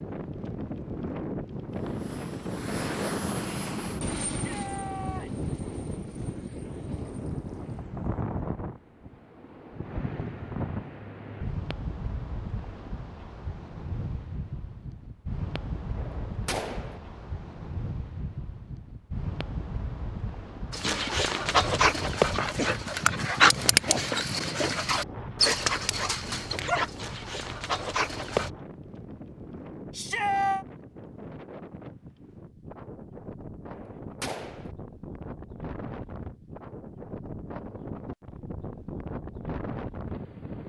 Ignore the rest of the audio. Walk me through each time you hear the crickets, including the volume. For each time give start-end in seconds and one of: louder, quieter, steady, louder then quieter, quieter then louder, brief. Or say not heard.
not heard.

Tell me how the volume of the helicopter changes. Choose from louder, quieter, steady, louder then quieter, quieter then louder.
quieter.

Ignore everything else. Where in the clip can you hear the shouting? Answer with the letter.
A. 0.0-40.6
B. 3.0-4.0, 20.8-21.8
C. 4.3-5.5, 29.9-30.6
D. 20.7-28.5
C.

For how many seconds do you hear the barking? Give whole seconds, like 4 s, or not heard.
8 s.